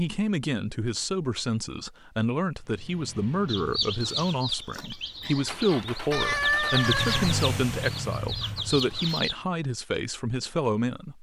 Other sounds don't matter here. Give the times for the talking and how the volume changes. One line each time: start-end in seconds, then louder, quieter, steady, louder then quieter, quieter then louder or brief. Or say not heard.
0.0-11.1 steady.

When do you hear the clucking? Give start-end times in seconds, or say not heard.
3.5-9.3.